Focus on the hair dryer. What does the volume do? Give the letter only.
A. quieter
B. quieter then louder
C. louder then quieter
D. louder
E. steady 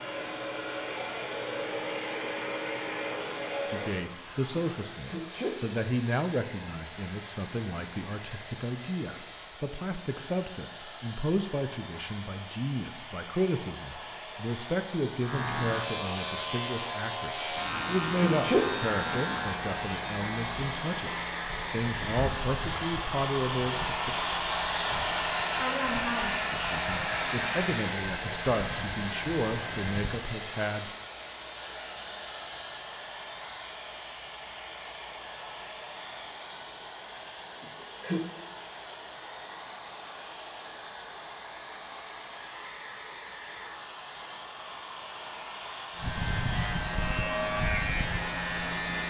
C.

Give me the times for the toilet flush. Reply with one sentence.
You can't hear the toilet flush here.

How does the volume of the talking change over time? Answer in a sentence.
The loudness of the talking stays about the same.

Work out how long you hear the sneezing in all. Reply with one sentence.
You can hear the sneezing for 2 seconds altogether.